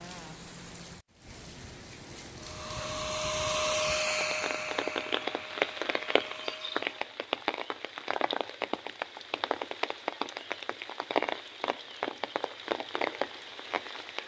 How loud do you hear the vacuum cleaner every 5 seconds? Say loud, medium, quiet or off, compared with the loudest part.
loud, quiet, off.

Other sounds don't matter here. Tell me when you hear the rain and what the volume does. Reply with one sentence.
The rain can be heard from 0.0 to 14.2 s, getting louder.